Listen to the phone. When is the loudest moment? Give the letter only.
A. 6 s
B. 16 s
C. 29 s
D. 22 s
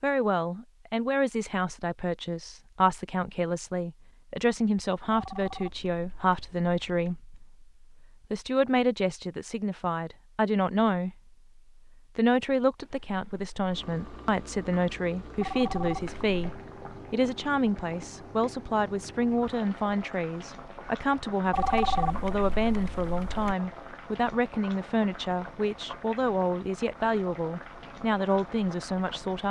D.